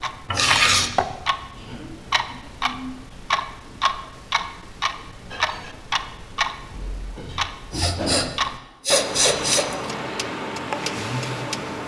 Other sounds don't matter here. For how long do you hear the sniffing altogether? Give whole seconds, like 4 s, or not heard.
2 s.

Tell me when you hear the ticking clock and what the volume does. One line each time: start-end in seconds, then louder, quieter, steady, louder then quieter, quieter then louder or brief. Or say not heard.
0.0-11.8 steady.